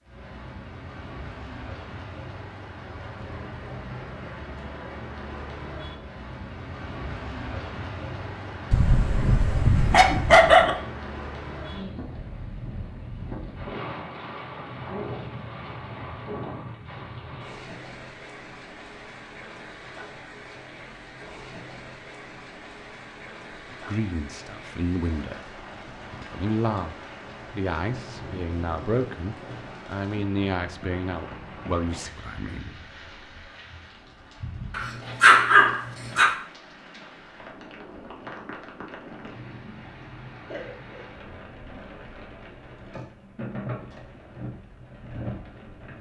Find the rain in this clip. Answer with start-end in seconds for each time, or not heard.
0.0-45.9.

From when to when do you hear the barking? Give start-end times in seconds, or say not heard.
8.7-10.7, 34.7-36.3.